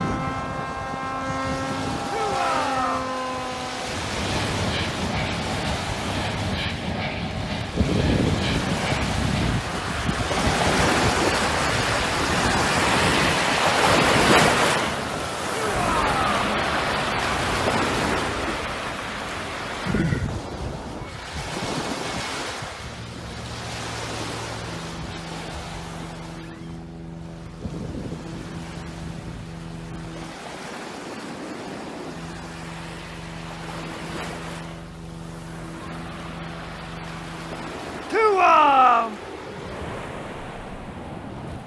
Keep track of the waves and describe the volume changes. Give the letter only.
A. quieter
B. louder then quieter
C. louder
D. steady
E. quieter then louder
B.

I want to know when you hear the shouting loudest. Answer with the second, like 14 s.
39 s.